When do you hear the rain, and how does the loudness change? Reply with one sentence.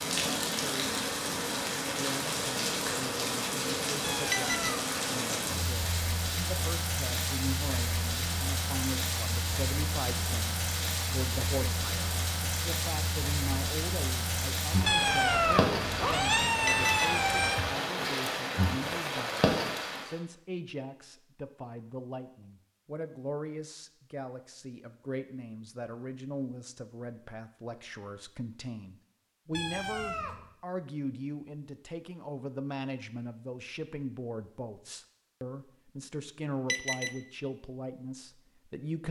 The rain can be heard from 0.0 to 20.2 s, at a steady volume.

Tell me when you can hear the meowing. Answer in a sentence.
You can hear the meowing from 4.0 to 4.8 s, from 14.8 to 17.6 s and from 29.5 to 30.5 s.